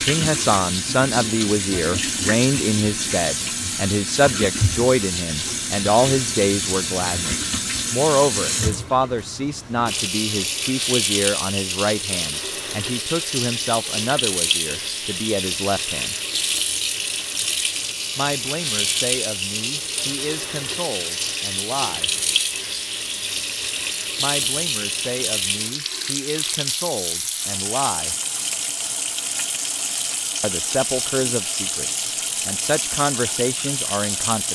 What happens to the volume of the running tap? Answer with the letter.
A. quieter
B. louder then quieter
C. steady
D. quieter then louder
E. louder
C.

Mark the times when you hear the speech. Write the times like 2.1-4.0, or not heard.
0.0-16.1, 18.1-22.1, 24.2-28.1, 30.4-34.5.